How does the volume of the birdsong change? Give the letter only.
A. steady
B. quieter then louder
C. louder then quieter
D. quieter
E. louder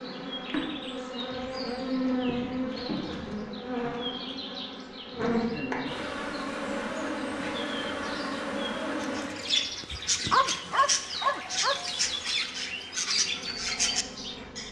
E.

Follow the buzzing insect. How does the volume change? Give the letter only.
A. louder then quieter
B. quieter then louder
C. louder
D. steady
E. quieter
E.